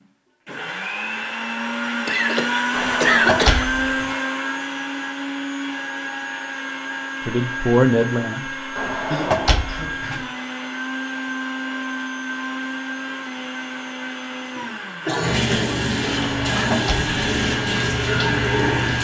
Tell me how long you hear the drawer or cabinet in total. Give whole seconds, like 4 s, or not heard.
4 s.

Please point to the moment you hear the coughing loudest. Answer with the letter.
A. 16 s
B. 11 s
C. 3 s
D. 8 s
C.